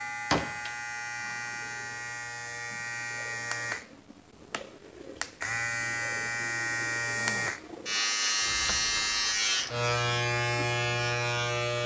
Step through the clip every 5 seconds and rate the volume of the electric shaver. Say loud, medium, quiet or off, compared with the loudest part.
medium, loud, loud.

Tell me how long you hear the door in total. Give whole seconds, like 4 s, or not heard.
2 s.